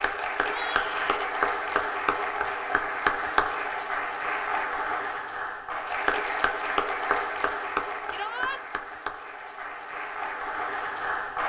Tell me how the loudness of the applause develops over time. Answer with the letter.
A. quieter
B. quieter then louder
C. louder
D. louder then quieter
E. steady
A.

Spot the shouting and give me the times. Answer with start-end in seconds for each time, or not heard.
0.5-1.3, 8.1-8.6.